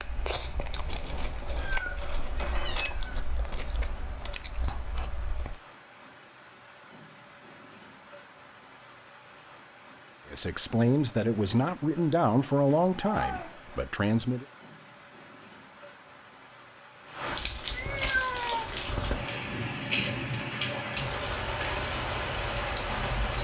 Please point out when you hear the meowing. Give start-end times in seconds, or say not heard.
1.6-3.2, 12.9-13.8, 17.7-18.9.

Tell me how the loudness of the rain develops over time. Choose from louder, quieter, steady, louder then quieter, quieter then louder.
louder.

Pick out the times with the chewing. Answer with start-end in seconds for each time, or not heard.
0.0-5.6.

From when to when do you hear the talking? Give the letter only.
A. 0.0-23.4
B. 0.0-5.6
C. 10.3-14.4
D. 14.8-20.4
C.